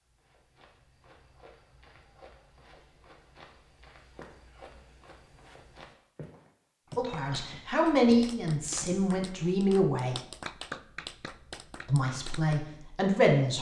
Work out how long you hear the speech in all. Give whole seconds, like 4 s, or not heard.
5 s.